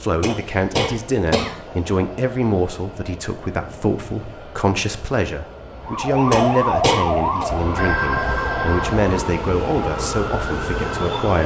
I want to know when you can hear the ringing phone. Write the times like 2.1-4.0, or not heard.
7.8-9.0.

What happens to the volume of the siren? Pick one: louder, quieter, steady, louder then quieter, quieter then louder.
quieter.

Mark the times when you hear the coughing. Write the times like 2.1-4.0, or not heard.
0.2-1.6, 6.3-7.5.